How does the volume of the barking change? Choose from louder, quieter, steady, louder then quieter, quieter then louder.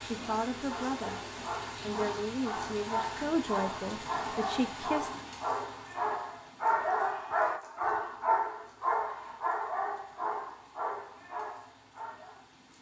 louder then quieter.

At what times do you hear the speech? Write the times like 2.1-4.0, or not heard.
0.0-5.1.